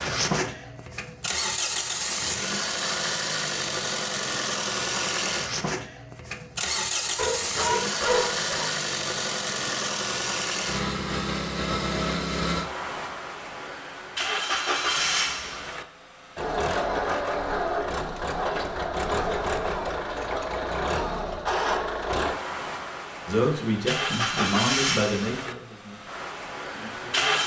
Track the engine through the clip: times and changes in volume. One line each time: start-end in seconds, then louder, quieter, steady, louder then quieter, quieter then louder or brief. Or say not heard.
0.0-27.4 steady.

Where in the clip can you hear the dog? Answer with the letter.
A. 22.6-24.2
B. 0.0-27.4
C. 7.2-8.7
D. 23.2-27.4
C.